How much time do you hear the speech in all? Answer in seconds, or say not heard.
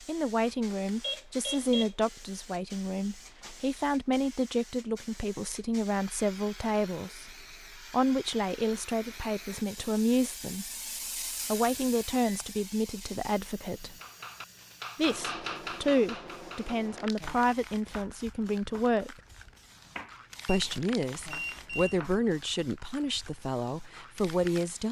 22 s.